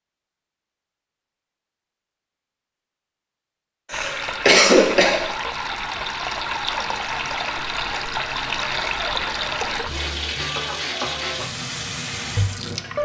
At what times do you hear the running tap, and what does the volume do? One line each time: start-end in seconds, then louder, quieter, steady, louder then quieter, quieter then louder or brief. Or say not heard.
3.9-13.0 steady.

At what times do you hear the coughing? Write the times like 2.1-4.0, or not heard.
3.9-5.2.